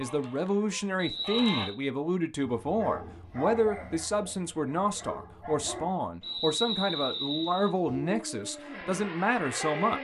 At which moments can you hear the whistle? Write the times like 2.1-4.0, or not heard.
0.9-1.8, 6.2-7.7.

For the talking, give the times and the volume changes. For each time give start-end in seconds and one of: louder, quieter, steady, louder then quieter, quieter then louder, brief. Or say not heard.
0.0-9.9 steady.